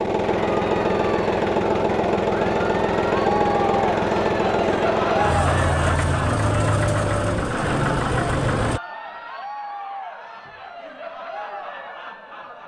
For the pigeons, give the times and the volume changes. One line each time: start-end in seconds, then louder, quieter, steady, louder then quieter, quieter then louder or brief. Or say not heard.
not heard.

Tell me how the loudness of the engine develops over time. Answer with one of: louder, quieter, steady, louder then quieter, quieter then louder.
steady.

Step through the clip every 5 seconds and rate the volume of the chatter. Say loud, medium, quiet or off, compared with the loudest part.
loud, loud, medium.